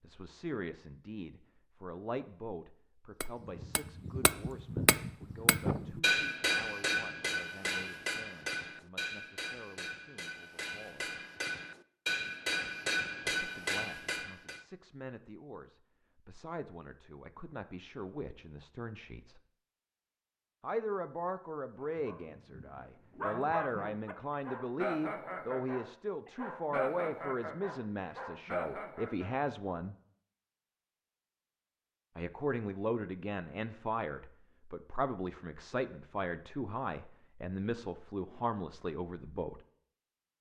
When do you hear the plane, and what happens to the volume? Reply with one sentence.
The plane can't be heard in this clip.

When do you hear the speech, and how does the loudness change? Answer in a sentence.
You can hear the speech from 0.0 to 11.2 s, getting quieter; from 13.3 to 19.4 s, getting louder; from 20.6 to 29.9 s, at a steady volume; and from 32.1 to 39.6 s, at a steady volume.